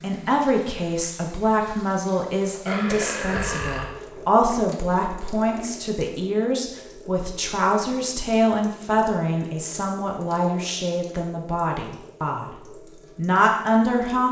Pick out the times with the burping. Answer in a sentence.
You can hear the burping from 2.6 to 4.0 s.